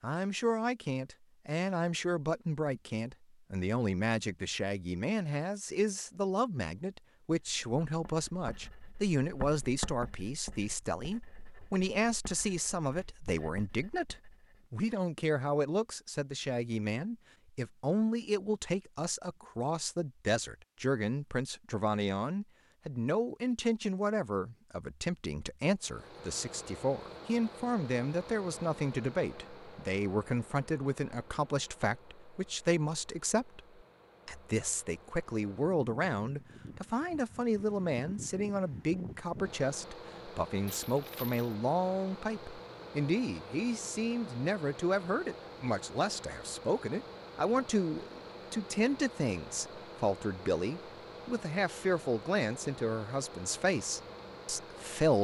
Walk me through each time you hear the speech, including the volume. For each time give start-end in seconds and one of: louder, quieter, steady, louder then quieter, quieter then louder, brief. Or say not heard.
0.0-33.6 steady
34.2-55.1 steady.